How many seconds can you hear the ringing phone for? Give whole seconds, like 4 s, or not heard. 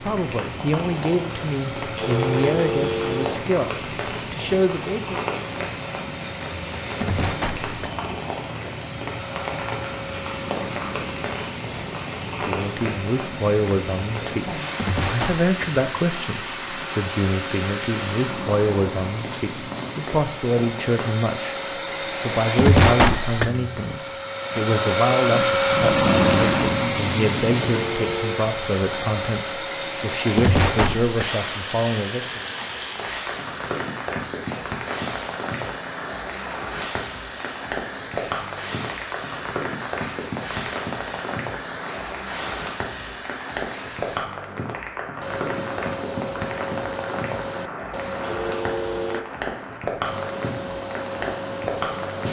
3 s.